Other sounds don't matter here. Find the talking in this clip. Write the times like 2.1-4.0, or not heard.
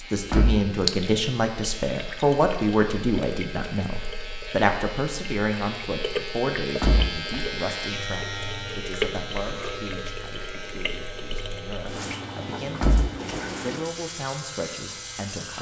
0.0-15.5.